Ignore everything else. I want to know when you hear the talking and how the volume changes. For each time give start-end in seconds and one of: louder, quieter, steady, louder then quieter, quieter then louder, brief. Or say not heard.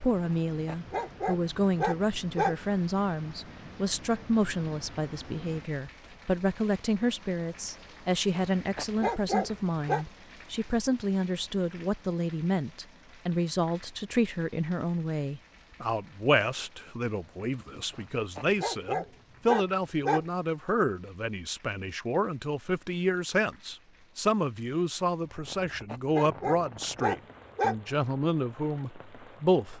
0.0-29.7 steady.